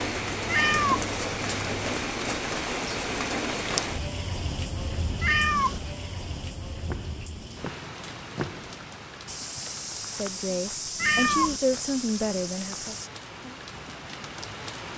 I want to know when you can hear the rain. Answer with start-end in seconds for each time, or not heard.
0.0-14.9.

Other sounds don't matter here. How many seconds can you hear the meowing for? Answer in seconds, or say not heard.
2 s.